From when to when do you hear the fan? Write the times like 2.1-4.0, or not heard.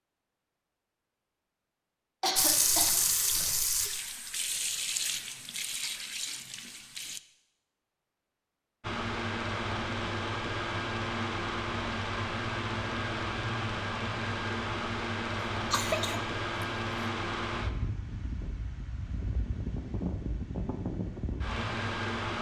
8.8-22.3.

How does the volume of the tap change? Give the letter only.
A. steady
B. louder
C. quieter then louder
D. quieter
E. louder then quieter
D.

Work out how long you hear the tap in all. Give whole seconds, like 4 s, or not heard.
5 s.